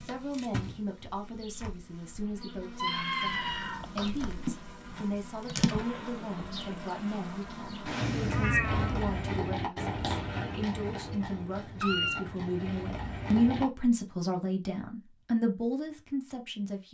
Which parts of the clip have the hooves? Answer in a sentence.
The hooves can be heard from 8.6 to 13.7 s.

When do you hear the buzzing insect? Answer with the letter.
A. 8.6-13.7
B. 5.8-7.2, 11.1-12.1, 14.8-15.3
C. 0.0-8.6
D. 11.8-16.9
C.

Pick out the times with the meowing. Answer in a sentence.
The meowing can be heard from 2.8 to 4.1 s, from 8.0 to 9.0 s and from 11.8 to 12.2 s.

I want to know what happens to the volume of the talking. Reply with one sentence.
The loudness of the talking goes up.